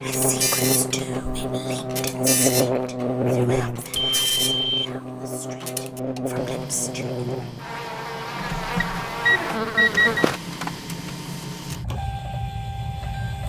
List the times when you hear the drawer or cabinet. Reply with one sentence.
You can't hear the drawer or cabinet here.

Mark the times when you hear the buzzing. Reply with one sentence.
The buzzing can be heard from 0.0 to 10.4 s.